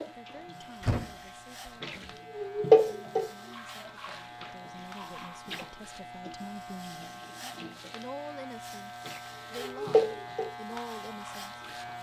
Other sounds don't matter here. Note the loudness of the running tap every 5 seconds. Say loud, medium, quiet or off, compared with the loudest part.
loud, medium, medium.